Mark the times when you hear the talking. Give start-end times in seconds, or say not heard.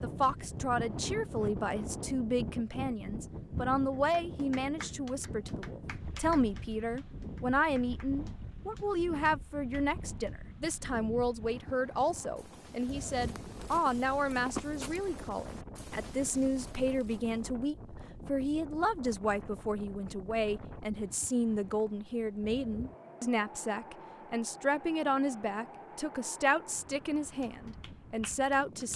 0.0-28.9.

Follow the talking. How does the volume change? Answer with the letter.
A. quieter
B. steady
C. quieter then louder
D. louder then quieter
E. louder
B.